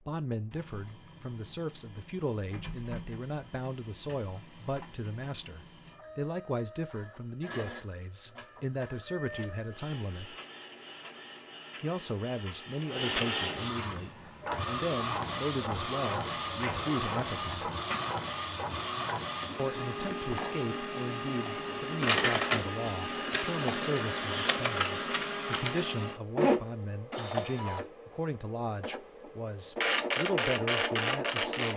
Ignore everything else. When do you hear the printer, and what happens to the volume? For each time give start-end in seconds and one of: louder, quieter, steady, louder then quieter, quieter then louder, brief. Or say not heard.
0.1-31.7 louder.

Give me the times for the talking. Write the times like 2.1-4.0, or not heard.
0.1-10.3, 11.8-17.7, 19.6-31.7.